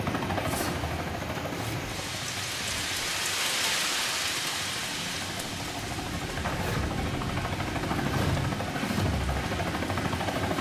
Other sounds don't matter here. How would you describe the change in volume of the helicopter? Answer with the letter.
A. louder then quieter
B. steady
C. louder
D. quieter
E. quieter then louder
E.